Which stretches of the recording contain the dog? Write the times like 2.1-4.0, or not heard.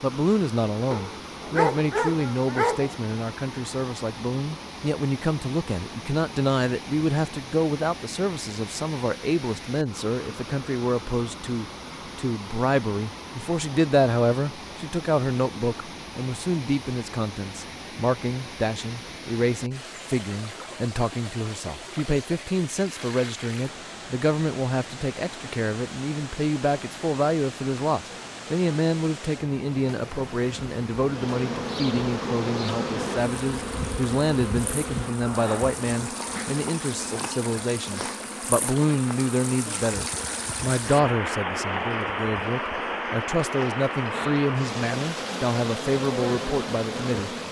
0.9-3.0.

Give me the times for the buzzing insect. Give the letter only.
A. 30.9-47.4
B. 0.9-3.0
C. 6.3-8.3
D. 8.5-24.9
A.